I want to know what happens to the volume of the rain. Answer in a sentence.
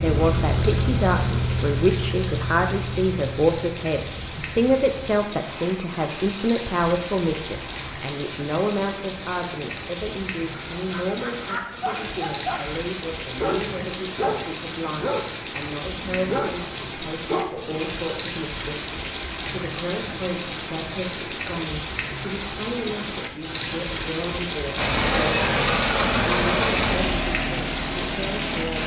The volume of the rain goes up.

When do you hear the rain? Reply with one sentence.
The rain can be heard from 0.0 to 28.8 s.